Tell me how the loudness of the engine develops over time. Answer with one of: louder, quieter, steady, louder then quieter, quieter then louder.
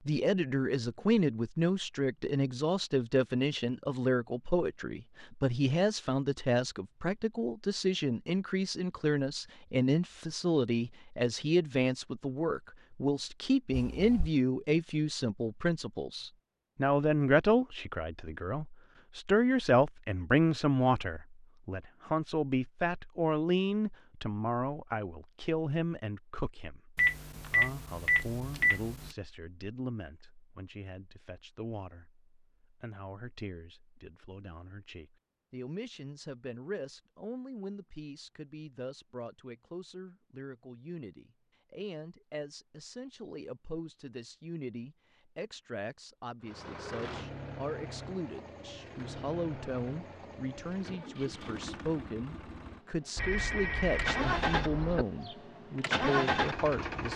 louder.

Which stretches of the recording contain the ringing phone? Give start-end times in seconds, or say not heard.
13.7-14.3, 26.9-29.1, 53.1-55.0.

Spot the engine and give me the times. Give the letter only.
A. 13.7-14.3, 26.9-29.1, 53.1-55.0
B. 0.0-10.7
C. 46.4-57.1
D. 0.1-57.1
C.